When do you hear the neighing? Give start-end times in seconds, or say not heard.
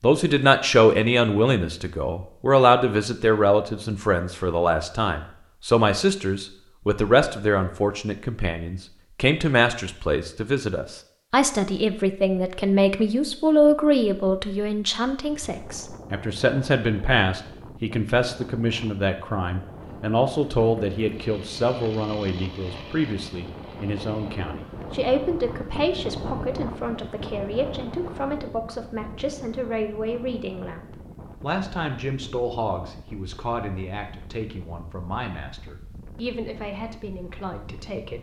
not heard.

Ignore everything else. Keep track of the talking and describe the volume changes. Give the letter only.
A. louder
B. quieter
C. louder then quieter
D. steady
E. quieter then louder
B.